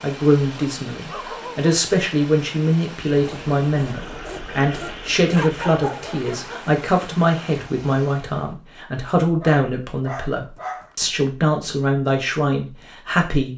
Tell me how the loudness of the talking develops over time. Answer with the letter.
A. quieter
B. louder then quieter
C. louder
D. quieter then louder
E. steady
E.